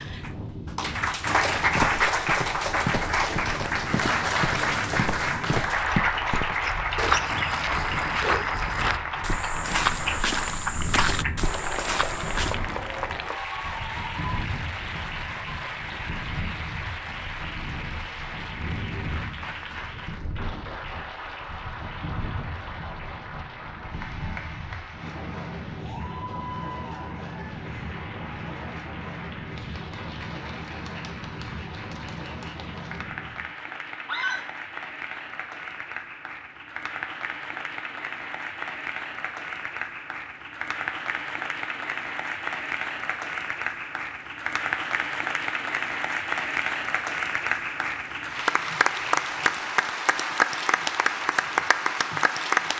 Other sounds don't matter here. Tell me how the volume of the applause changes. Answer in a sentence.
The volume of the applause goes down, then up.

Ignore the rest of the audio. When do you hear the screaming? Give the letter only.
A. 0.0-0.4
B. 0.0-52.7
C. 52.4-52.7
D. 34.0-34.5
D.